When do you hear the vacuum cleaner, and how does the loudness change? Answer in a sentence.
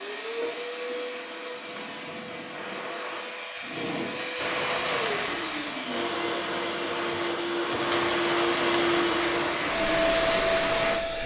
You can hear the vacuum cleaner from 0.0 to 11.2 s, getting louder.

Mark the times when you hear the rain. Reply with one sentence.
You can hear the rain from 4.3 to 10.9 s.